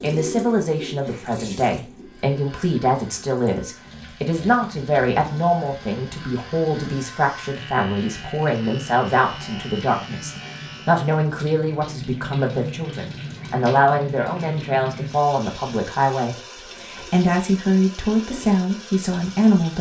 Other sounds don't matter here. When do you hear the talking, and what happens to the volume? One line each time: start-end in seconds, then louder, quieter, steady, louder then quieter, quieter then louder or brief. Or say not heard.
0.0-19.7 steady.